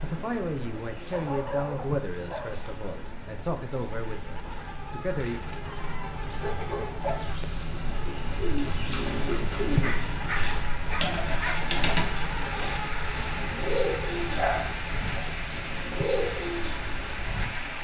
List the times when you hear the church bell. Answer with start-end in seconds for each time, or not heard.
not heard.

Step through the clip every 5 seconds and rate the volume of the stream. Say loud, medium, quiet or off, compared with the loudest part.
medium, medium, loud, loud.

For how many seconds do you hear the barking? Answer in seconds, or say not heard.
6 s.